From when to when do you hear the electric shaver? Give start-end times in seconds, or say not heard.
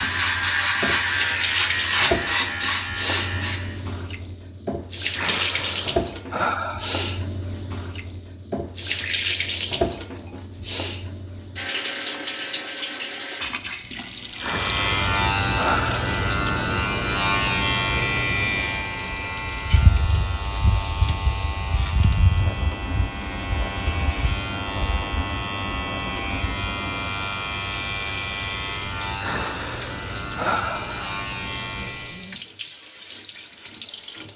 0.0-3.9, 14.3-32.3.